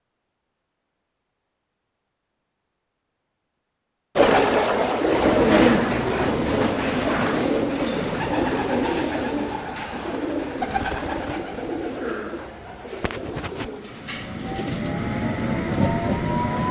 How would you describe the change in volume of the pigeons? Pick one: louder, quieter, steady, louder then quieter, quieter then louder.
quieter.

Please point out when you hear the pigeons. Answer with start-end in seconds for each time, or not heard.
4.2-14.9.